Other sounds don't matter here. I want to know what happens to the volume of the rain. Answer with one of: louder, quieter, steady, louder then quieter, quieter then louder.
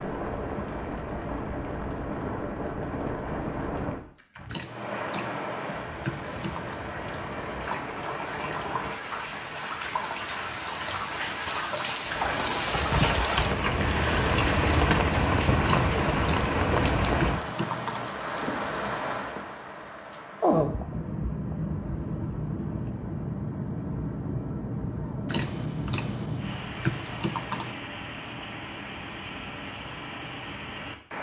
louder then quieter.